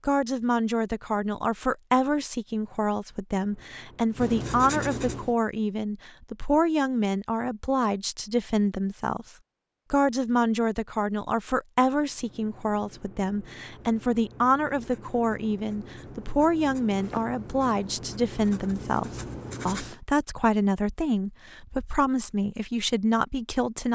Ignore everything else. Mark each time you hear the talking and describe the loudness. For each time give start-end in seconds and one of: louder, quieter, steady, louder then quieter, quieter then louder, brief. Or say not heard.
0.1-23.9 steady.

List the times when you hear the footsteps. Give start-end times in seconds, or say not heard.
not heard.